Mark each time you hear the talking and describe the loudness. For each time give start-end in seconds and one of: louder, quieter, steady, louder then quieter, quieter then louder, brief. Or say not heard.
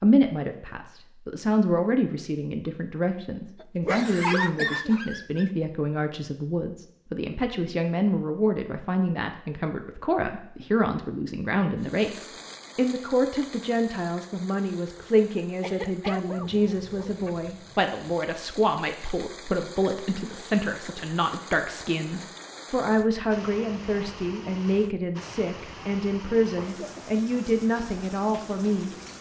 0.0-28.9 steady.